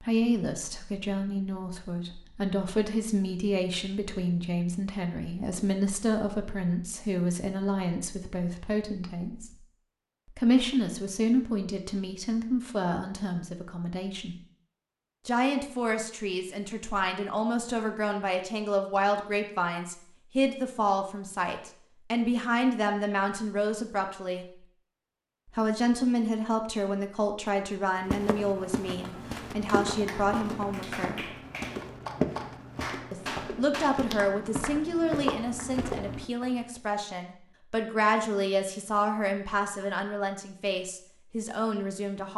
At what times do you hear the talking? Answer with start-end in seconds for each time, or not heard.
0.0-9.6, 10.3-14.3, 15.2-24.4, 25.6-31.2, 33.1-42.3.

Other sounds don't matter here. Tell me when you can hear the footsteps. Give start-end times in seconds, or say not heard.
27.9-36.6.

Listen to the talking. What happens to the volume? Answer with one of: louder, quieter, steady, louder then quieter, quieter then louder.
steady.